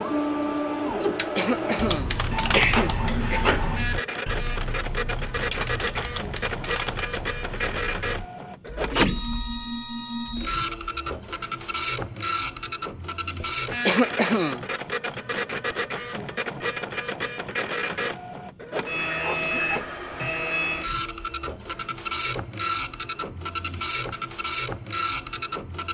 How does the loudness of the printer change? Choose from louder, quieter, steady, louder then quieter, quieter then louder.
steady.